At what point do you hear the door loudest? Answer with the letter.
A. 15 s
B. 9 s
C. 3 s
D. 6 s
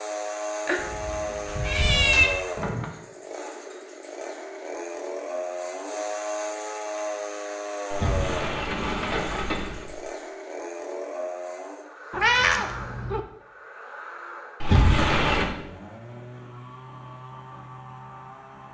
A.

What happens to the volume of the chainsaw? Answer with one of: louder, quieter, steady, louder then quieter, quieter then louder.
quieter.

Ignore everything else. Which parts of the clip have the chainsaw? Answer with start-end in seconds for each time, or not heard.
0.0-18.6.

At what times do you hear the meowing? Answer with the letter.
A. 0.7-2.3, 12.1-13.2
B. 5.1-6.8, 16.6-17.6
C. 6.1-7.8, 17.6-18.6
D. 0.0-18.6
A.